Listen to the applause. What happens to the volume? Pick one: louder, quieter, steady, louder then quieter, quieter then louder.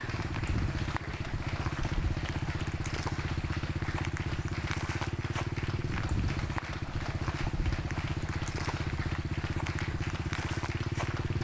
steady.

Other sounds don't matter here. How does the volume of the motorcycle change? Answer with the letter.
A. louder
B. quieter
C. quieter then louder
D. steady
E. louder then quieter
D.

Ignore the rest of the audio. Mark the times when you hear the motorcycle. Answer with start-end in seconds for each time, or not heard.
0.0-11.4.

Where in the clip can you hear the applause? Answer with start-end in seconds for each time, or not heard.
0.0-11.4.